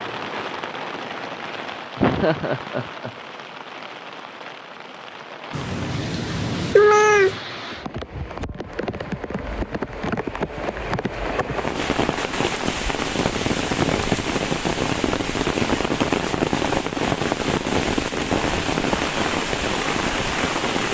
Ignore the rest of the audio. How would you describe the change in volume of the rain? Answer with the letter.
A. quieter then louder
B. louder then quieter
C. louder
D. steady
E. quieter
C.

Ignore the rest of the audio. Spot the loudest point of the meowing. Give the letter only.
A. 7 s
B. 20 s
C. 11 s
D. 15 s
A.